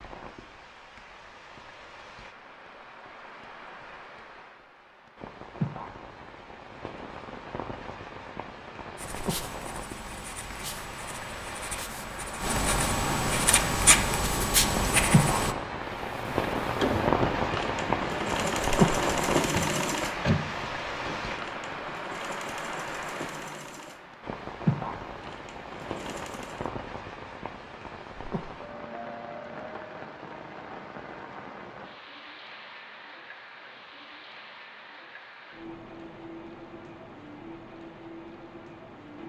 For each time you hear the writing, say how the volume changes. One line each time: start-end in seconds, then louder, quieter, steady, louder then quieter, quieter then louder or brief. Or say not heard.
8.9-15.6 louder.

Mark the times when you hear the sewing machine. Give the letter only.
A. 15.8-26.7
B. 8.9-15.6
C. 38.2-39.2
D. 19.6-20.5
A.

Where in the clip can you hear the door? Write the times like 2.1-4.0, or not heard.
19.6-20.5.